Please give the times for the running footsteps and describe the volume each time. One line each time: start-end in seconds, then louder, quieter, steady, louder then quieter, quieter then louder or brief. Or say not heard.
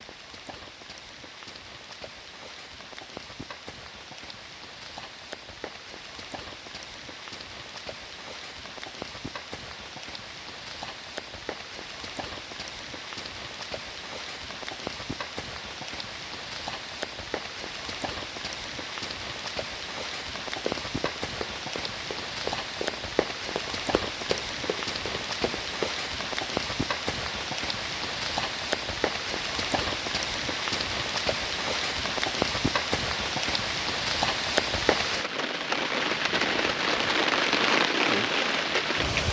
20.6-25.9 louder then quieter.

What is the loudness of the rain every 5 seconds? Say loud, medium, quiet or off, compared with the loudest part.
quiet, quiet, quiet, medium, medium, medium, loud, loud.